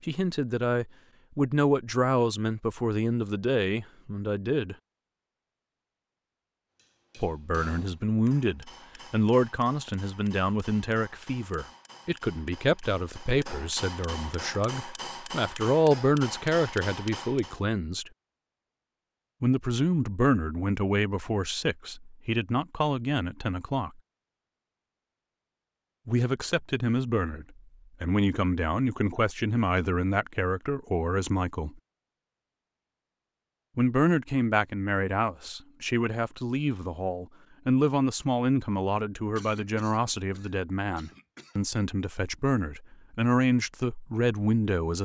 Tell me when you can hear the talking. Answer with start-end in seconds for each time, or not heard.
0.1-4.8, 7.2-18.1, 19.4-23.9, 26.1-31.8, 33.8-45.0.